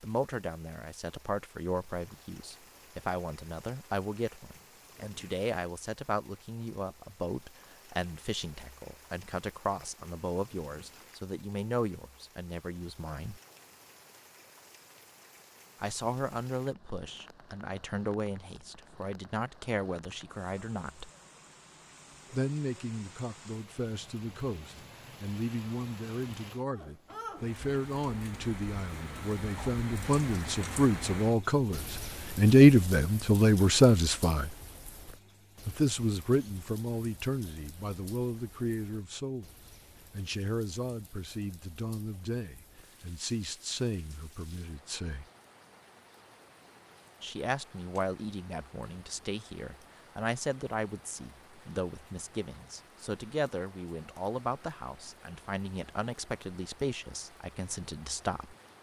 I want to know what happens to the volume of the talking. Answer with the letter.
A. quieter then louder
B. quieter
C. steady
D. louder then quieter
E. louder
D.